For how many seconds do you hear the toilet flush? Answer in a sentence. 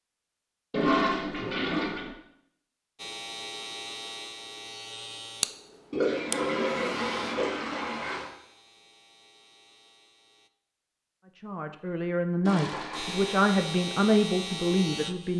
The toilet flush can be heard for 5 seconds in total.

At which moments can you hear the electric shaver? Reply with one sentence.
The electric shaver can be heard from 3.0 to 10.5 s and from 12.9 to 15.3 s.